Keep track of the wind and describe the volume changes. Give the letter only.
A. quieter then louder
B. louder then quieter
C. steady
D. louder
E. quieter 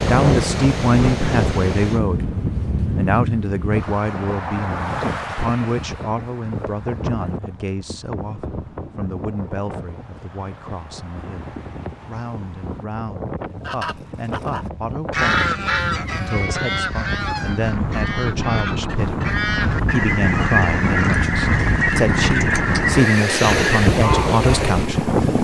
A.